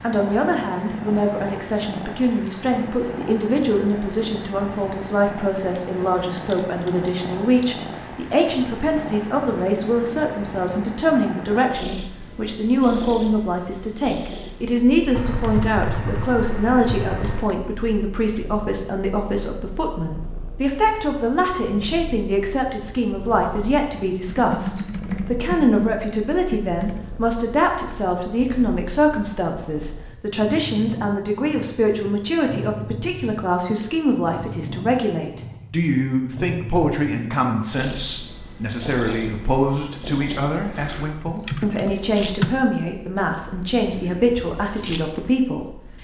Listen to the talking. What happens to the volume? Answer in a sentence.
The loudness of the talking stays about the same.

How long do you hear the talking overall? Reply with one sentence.
You can hear the talking for 46 seconds altogether.